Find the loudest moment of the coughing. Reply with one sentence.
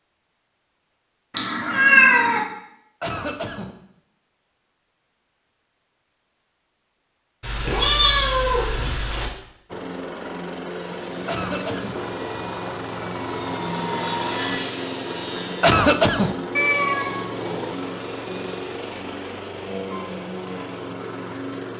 The volume of the coughing peaks at 16 seconds.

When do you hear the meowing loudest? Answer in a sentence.
The volume of the meowing peaks at 2 seconds.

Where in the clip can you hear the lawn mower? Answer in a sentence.
You can hear the lawn mower from 9.7 to 21.7 s.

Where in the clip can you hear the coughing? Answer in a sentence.
You can hear the coughing from 3.0 to 3.8 s, from 11.2 to 12.0 s and from 15.6 to 16.4 s.